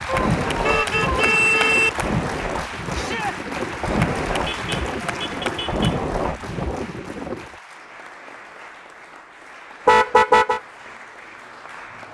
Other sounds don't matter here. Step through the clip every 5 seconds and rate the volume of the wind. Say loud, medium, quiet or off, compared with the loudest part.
loud, loud, off.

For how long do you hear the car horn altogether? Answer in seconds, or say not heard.
4 s.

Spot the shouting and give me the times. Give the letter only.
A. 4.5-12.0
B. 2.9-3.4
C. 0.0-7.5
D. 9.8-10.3
B.